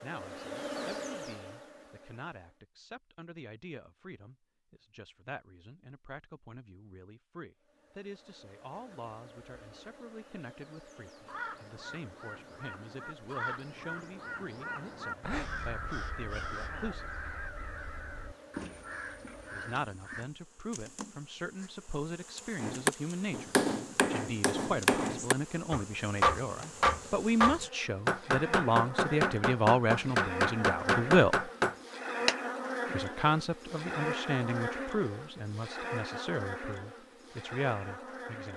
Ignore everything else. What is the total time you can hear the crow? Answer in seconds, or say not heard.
9 s.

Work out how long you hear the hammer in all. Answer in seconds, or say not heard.
10 s.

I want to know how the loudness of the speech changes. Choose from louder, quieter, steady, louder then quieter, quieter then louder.
louder.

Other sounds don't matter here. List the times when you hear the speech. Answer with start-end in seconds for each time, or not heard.
0.0-17.1, 19.5-31.5, 32.9-38.5.